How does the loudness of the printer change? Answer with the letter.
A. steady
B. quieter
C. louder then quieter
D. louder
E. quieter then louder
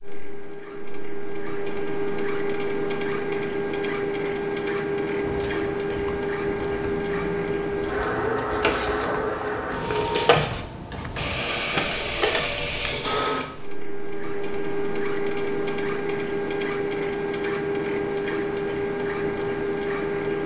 A.